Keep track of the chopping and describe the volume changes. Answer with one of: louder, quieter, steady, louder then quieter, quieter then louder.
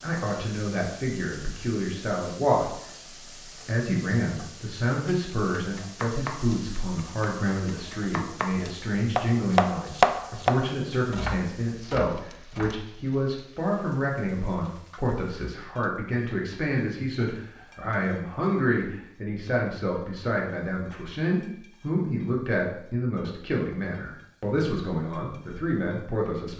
louder then quieter.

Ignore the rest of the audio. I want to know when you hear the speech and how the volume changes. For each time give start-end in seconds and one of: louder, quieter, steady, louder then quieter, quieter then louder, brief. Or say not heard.
0.0-2.7 brief
3.6-26.5 steady.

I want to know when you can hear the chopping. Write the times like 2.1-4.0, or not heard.
5.5-12.8.